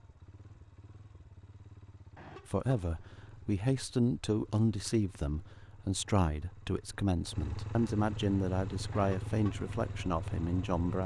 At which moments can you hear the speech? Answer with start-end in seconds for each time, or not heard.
2.5-11.0.